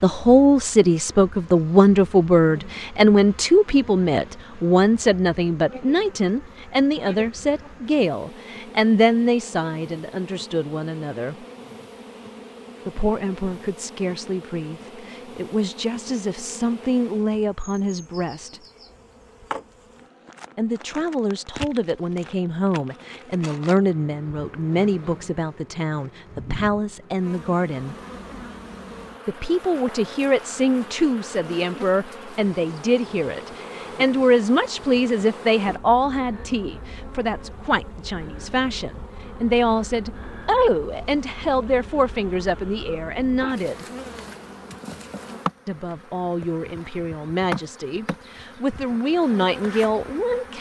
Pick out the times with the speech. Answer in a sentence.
You can hear the speech from 0.0 to 11.4 s, from 12.8 to 18.6 s, from 20.6 to 27.9 s, from 29.2 to 43.9 s and from 45.6 to 50.5 s.